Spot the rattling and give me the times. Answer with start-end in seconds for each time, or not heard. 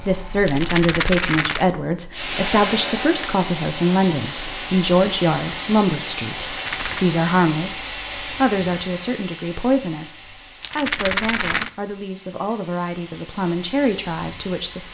0.5-1.6, 6.5-7.1, 10.6-11.7.